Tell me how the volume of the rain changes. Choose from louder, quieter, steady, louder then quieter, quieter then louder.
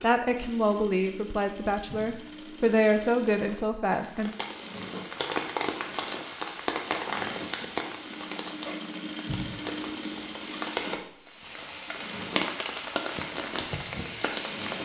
quieter then louder.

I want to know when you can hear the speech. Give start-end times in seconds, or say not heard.
0.0-4.3.